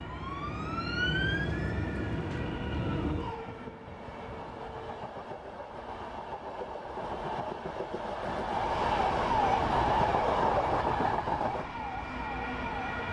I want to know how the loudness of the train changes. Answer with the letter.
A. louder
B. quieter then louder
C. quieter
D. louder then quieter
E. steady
A.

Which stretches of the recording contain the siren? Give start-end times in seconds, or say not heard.
0.0-3.5, 8.6-13.0.